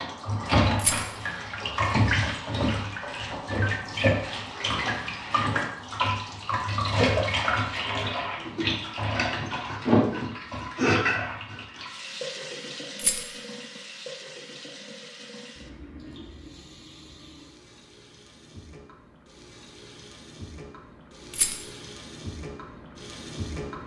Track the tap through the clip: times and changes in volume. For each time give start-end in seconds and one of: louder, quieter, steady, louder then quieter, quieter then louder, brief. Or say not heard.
0.0-23.8 quieter.